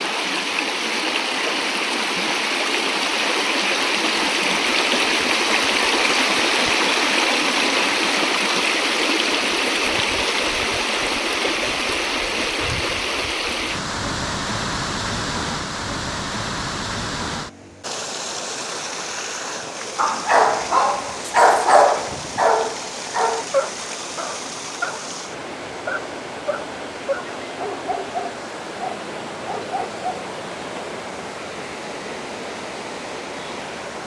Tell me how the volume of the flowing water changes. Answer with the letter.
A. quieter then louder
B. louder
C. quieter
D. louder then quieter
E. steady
C.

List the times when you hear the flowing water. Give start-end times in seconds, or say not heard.
0.0-34.0.